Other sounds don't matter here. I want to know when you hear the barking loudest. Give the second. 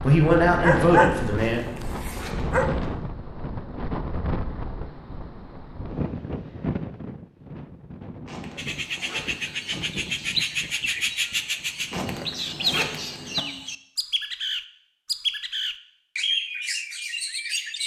1 s.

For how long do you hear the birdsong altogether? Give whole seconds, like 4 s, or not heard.
9 s.